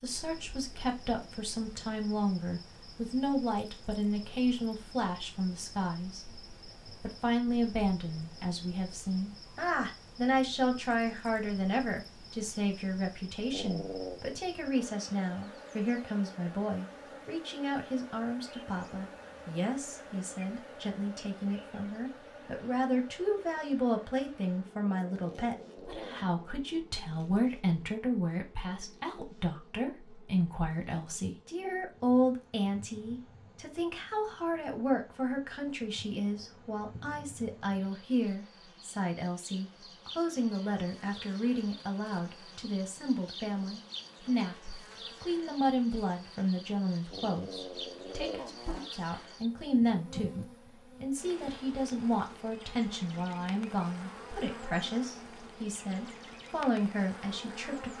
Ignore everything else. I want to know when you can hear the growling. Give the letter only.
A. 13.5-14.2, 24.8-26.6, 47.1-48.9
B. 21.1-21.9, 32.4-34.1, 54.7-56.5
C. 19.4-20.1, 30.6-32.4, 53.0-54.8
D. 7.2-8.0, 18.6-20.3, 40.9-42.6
A.